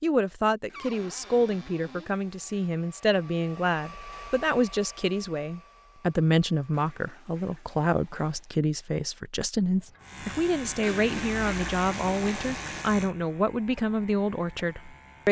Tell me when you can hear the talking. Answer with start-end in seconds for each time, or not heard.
0.0-15.2.